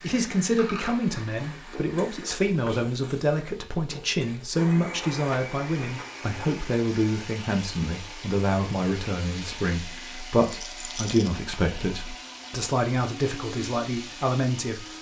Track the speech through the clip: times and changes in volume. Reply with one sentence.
You can hear the speech from 0.0 to 14.9 s, at a steady volume.